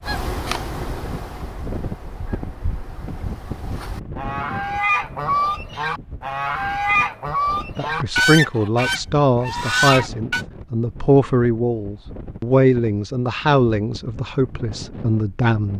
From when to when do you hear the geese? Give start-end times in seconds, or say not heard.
0.0-10.4.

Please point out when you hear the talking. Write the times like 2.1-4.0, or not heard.
7.8-15.7.